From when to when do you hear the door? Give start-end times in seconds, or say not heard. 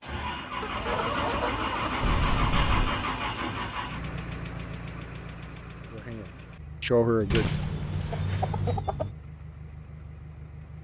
2.0-2.9, 7.3-8.8.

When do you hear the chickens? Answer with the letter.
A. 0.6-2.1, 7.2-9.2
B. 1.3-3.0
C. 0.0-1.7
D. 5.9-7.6
A.